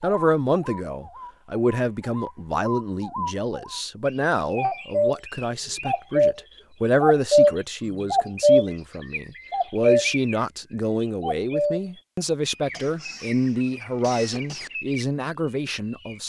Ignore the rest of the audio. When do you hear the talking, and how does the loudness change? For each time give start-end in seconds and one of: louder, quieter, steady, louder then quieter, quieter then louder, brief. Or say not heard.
0.0-16.2 steady.